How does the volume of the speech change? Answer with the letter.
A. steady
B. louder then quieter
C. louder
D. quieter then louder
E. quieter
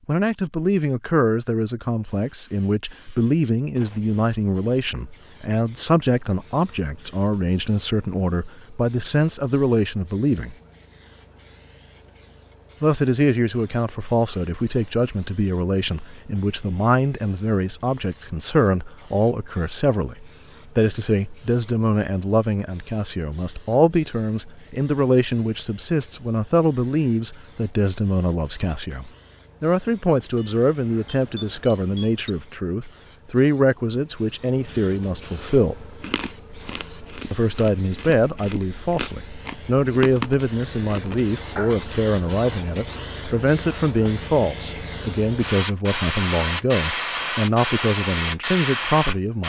A.